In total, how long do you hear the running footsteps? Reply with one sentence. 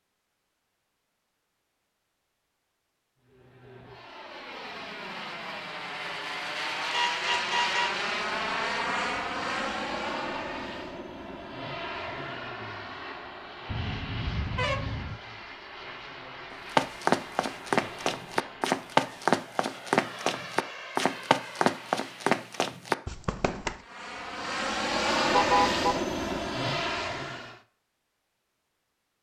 You can hear the running footsteps for 7 seconds altogether.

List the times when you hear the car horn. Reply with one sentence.
You can hear the car horn from 6.8 to 8.0 s, from 13.7 to 15.2 s and from 25.3 to 26.0 s.